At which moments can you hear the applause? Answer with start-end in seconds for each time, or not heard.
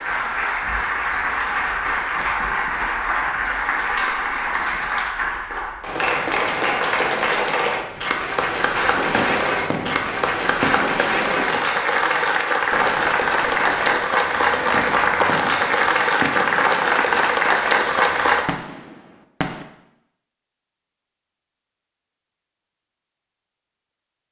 0.0-18.4.